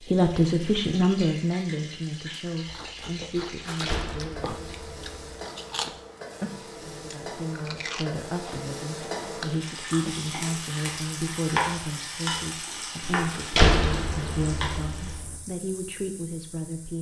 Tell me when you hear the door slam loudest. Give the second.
14 s.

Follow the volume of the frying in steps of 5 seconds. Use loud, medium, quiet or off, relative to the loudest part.
medium, medium, loud, quiet.